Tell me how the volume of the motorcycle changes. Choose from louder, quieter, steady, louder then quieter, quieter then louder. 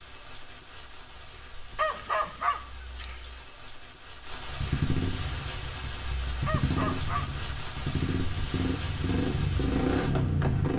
louder.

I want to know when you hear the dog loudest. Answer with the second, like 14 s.
2 s.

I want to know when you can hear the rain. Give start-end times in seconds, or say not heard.
0.0-10.7.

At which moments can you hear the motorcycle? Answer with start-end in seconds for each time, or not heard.
4.5-10.7.